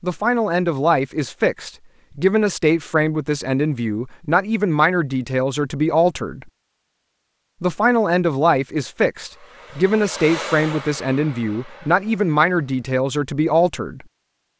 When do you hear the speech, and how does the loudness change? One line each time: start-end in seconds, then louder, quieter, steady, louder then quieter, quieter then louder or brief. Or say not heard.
0.0-6.5 steady
7.6-14.1 steady.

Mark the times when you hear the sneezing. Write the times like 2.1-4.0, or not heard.
not heard.